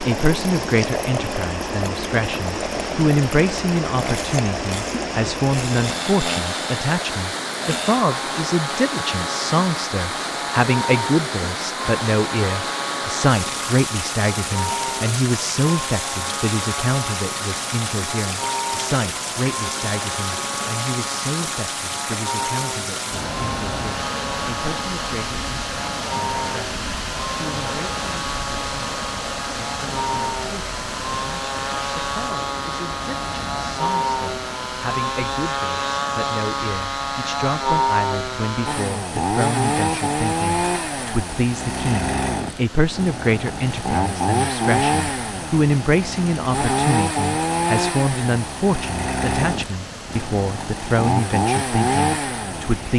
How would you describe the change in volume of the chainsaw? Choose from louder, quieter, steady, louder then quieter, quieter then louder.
louder.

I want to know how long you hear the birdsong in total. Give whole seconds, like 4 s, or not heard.
not heard.